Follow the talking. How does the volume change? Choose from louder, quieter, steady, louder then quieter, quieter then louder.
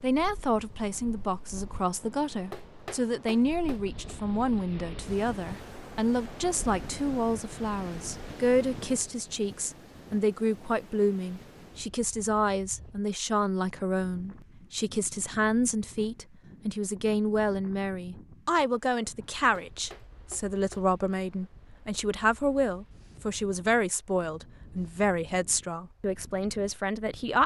steady.